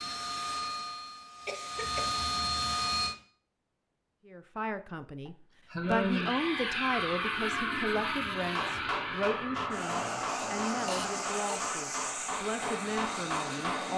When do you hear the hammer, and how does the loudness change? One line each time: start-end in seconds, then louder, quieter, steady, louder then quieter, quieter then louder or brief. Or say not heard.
8.4-13.9 quieter then louder.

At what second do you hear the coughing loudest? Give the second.
6 s.